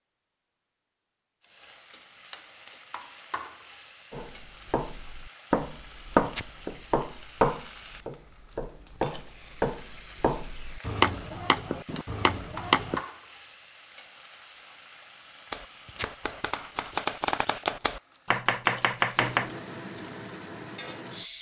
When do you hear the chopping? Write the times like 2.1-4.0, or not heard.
4.1-13.0, 15.5-19.5.